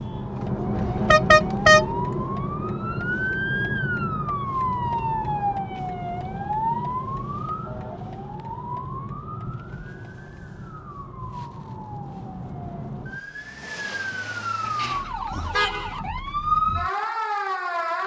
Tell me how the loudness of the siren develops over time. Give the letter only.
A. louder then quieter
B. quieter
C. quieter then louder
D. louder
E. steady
C.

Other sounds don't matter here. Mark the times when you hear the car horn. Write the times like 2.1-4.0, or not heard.
0.8-1.9, 14.6-16.0.